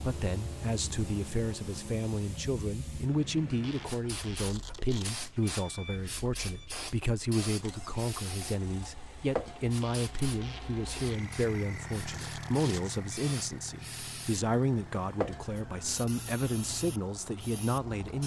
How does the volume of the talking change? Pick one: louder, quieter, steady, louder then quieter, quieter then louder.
steady.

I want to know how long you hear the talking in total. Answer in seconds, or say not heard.
18 s.